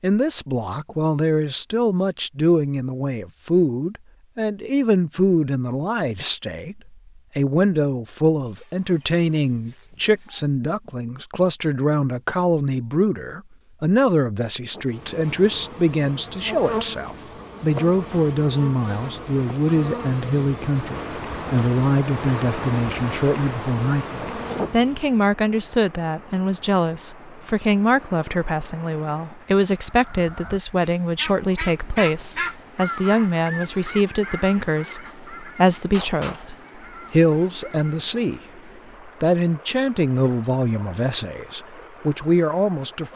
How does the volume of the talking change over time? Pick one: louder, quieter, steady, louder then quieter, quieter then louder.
steady.